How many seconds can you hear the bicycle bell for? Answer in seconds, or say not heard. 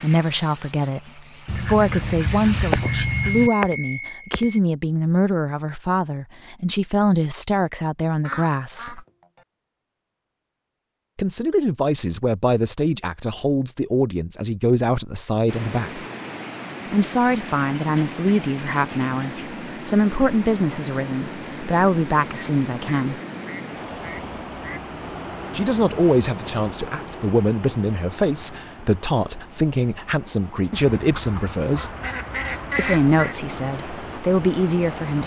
2 s.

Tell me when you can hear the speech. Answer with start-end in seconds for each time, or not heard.
0.0-9.0, 11.2-16.0, 16.9-23.2, 25.6-31.9, 32.8-35.2.